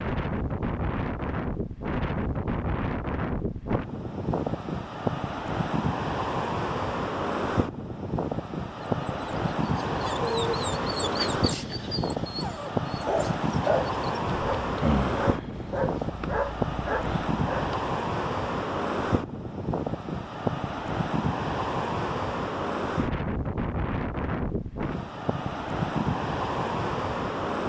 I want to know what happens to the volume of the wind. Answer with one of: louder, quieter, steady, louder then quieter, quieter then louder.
steady.